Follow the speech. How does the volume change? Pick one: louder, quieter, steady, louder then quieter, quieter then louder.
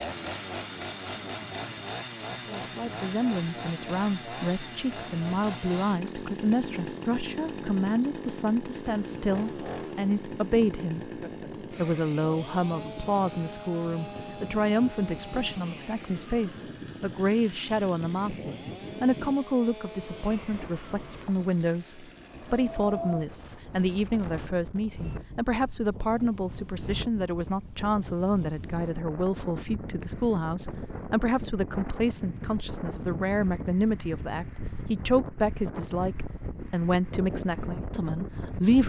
steady.